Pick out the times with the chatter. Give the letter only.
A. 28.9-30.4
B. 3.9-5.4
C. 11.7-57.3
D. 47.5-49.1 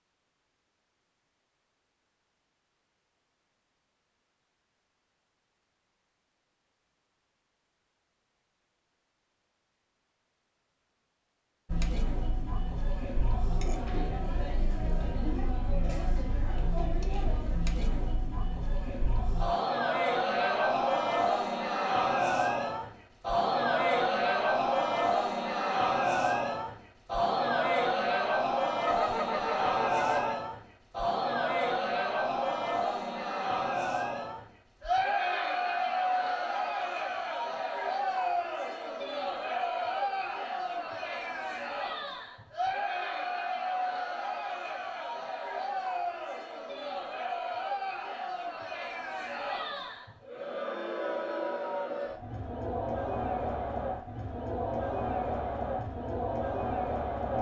C.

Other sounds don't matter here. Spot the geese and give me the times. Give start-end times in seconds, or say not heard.
28.9-30.4.